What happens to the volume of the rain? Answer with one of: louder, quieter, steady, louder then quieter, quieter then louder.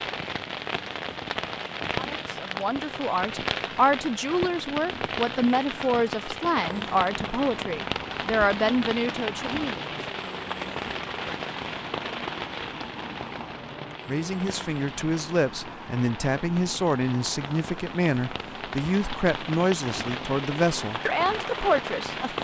quieter then louder.